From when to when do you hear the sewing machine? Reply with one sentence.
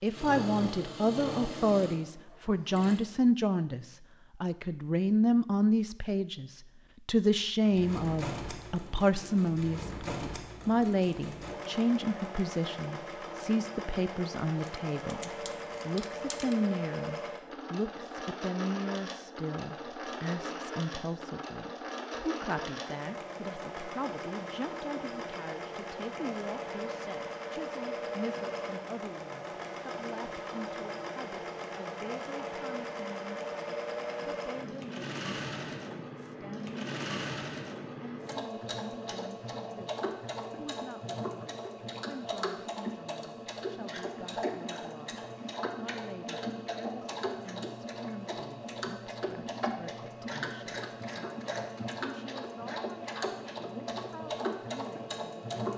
You can hear the sewing machine from 0.0 to 3.0 s and from 7.6 to 55.7 s.